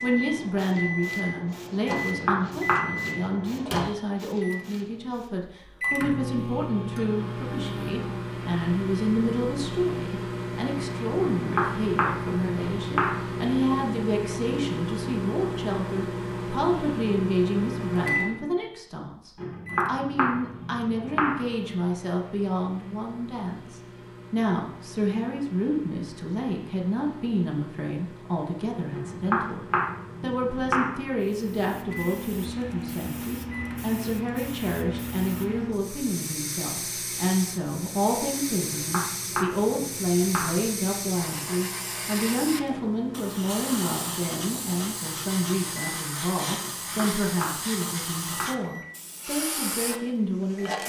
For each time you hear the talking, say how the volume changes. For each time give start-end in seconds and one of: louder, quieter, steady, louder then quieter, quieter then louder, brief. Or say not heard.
0.0-29.6 steady
30.2-50.8 steady.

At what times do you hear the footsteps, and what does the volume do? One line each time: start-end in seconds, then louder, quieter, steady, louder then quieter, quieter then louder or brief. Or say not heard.
not heard.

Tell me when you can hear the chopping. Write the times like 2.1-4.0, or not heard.
1.9-3.4, 11.3-13.2, 19.4-21.4, 28.9-31.0, 38.5-40.6, 46.6-48.6.